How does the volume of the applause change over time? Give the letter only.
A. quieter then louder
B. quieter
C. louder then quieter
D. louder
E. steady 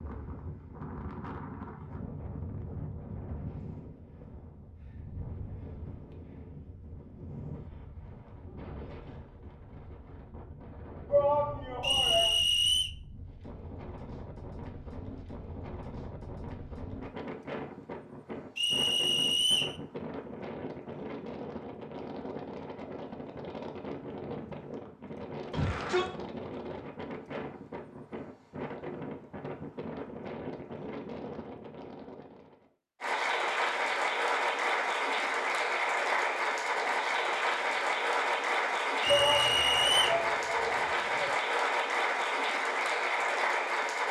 E.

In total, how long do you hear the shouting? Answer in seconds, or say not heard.
4 s.